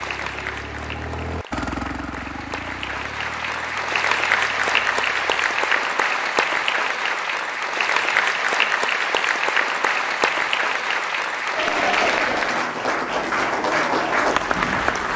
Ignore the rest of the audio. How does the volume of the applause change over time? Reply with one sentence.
The volume of the applause goes up.